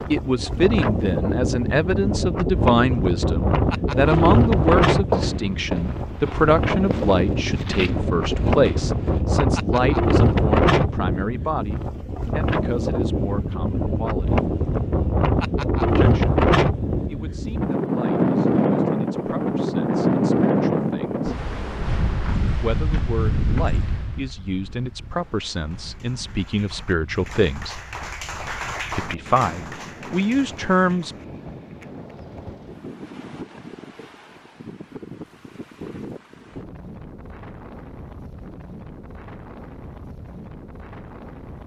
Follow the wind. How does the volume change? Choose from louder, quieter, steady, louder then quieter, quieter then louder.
quieter.